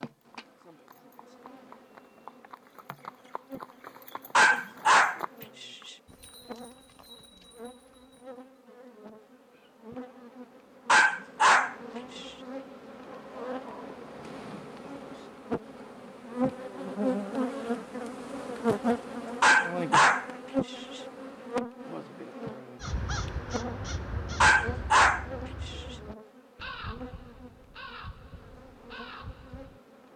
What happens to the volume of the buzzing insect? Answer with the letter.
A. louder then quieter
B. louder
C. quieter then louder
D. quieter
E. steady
A.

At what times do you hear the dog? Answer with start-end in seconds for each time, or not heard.
4.3-5.9, 10.8-12.3, 19.4-21.0, 24.4-25.8.